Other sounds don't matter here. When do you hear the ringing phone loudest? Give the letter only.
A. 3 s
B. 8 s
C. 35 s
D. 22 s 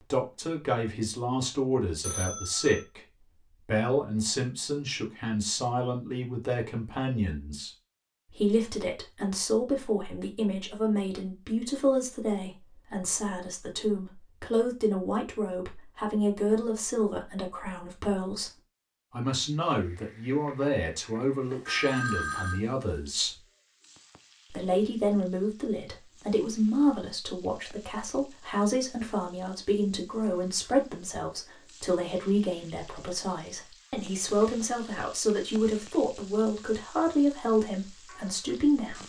D.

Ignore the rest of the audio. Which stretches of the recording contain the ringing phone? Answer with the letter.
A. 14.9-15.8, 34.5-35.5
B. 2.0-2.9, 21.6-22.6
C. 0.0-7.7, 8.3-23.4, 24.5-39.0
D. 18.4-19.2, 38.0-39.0
B.